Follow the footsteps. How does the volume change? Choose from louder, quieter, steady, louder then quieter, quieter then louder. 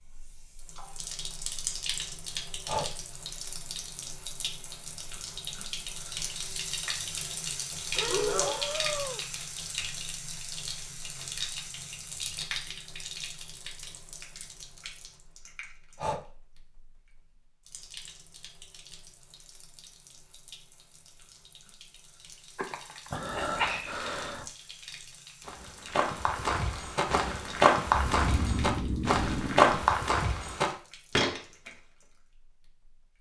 louder then quieter.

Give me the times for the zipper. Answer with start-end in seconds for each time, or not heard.
not heard.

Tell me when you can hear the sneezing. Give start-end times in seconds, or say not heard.
22.6-23.9.